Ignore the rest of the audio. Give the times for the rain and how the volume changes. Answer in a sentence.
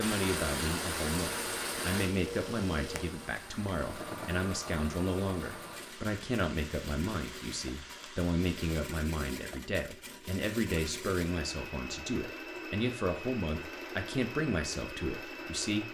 The rain can be heard from 0.0 to 8.9 s, getting quieter.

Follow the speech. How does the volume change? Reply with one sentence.
The volume of the speech stays about the same.